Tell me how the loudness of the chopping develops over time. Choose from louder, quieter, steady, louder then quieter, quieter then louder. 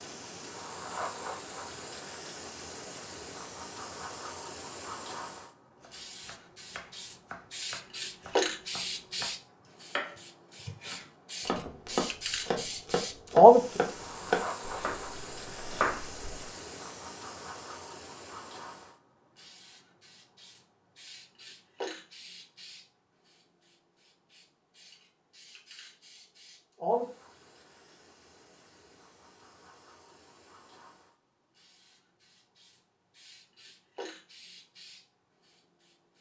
louder.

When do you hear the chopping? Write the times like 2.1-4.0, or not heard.
5.8-16.2.